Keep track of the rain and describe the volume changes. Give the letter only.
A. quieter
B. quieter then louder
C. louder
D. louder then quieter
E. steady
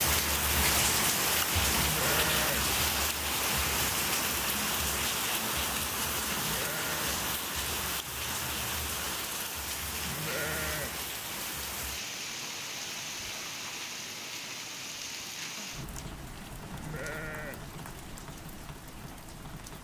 A.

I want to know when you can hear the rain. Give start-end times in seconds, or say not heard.
0.0-19.7.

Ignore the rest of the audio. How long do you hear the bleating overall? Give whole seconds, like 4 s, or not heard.
4 s.